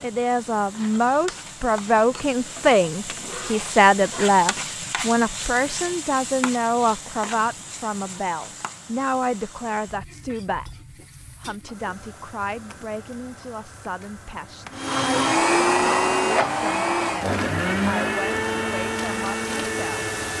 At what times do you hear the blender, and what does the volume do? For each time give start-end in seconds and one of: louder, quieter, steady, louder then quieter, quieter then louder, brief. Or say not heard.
14.7-20.3 quieter.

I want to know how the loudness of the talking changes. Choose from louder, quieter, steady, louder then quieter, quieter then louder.
quieter.